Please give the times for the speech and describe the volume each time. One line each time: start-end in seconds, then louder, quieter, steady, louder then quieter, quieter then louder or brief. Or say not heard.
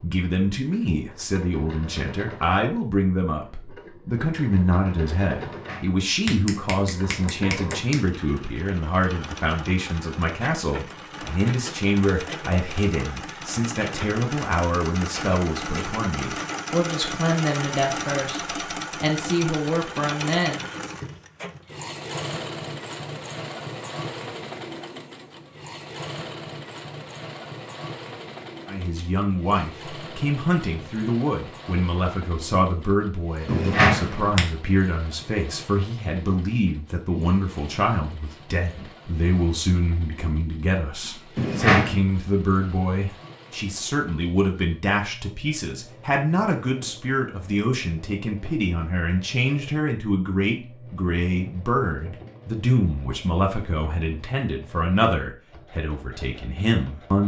0.0-20.6 steady
28.6-57.2 steady.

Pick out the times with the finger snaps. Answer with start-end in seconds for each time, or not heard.
5.4-8.0, 33.5-34.4, 41.4-42.0.